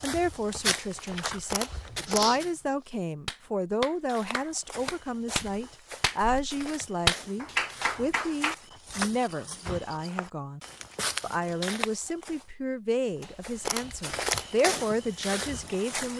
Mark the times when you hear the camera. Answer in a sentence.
The camera can be heard from 1.1 to 2.4 s and from 13.2 to 14.6 s.